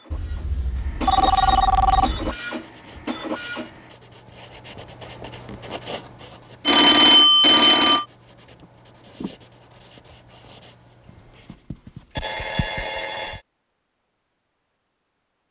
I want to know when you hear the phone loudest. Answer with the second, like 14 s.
7 s.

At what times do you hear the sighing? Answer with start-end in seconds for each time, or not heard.
not heard.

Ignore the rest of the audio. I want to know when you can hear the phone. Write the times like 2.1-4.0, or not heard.
0.1-2.4, 6.7-8.1, 11.5-13.4.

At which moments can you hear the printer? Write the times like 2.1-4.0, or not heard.
0.0-3.7.